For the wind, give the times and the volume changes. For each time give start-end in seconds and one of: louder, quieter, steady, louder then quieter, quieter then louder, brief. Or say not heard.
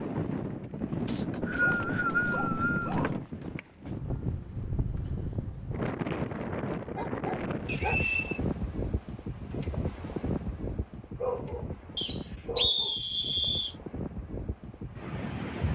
0.0-15.7 quieter.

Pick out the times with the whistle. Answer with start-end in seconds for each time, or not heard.
1.1-3.0, 7.7-8.4, 11.9-13.8.